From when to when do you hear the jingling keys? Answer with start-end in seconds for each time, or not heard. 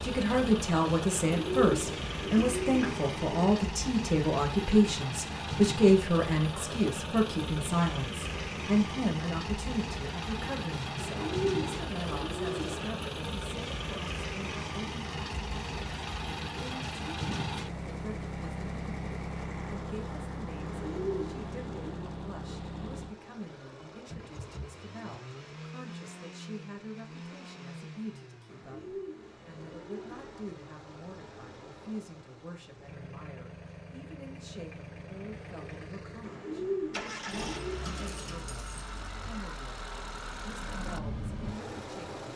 37.3-39.3.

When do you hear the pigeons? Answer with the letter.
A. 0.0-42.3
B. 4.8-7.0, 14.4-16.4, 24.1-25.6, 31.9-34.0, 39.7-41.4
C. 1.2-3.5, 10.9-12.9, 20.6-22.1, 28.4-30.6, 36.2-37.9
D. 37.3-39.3
C.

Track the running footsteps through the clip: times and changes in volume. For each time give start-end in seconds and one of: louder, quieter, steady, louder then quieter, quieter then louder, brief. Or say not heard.
not heard.